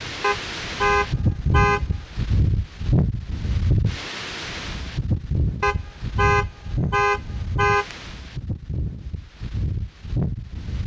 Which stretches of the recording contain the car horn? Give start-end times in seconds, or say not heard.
0.2-1.9, 5.6-8.0.